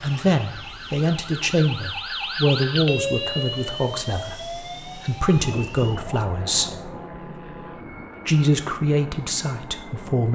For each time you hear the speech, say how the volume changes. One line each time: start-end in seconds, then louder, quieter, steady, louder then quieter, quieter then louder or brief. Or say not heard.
0.0-6.8 quieter then louder
8.2-10.2 brief.